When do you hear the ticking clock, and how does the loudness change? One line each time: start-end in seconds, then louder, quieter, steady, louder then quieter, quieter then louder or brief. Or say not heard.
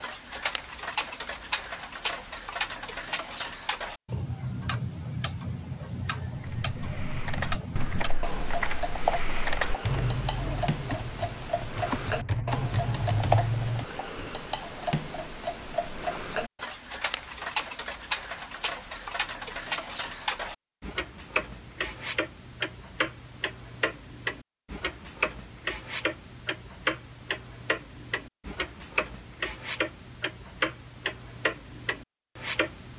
0.0-32.9 steady.